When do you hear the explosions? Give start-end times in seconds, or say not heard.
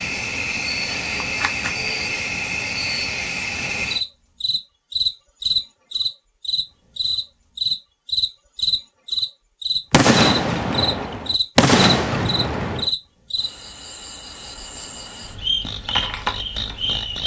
9.9-12.9.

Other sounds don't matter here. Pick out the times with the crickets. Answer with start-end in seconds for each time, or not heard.
0.0-17.2.